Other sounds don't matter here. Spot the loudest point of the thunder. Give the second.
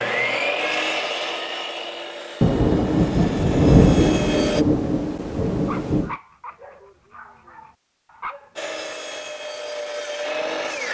4 s.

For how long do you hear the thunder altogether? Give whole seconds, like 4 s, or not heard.
4 s.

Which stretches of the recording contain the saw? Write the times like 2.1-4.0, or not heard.
0.0-4.7, 8.6-10.9.